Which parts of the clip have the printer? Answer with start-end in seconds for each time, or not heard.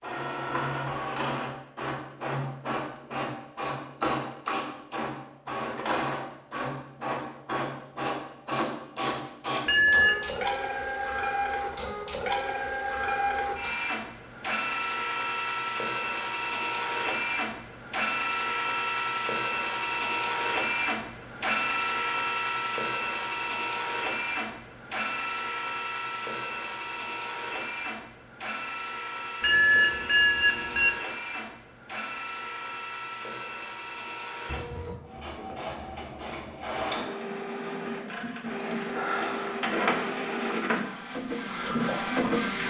0.0-42.6.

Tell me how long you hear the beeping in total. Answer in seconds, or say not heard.
2 s.